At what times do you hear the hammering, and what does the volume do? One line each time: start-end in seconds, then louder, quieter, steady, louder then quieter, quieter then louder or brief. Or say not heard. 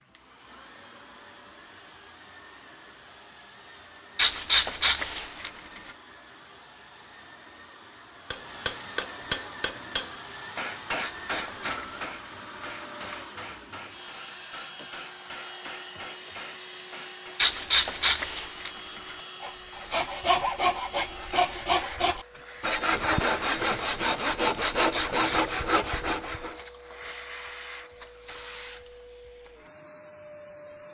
8.3-17.4 quieter.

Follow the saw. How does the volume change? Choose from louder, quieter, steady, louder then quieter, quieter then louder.
steady.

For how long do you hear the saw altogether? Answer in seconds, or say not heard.
7 s.